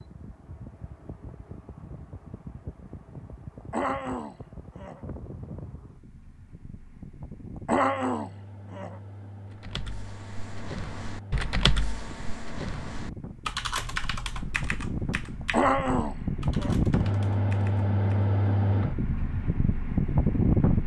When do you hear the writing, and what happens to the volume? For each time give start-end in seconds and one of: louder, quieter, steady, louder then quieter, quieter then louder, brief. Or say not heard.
not heard.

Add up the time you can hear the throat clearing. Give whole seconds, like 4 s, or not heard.
4 s.